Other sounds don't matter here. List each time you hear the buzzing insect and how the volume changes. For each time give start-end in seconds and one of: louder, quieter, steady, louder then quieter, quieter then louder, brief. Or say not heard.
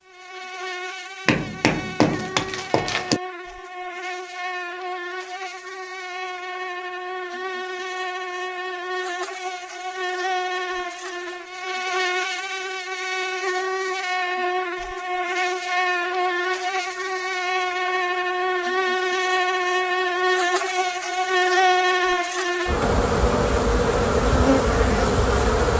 0.0-25.7 louder.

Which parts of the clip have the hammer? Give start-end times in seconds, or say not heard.
1.2-3.2.